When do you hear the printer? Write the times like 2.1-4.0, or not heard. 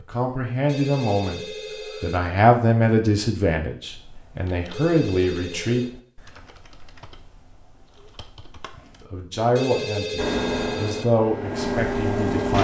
10.2-12.5.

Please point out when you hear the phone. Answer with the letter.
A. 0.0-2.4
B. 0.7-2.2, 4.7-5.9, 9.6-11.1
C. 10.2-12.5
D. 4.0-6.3
B.